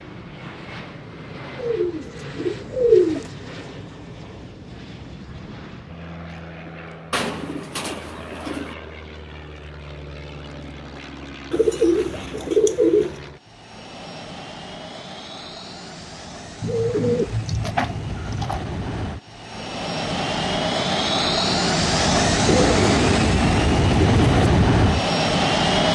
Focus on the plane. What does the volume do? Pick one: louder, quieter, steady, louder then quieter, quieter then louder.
louder.